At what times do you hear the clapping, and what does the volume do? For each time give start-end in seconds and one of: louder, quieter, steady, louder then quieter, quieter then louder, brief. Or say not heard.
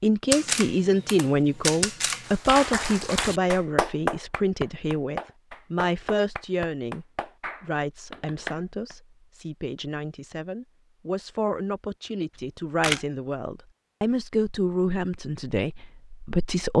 2.2-8.9 quieter.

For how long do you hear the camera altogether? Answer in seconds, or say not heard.
3 s.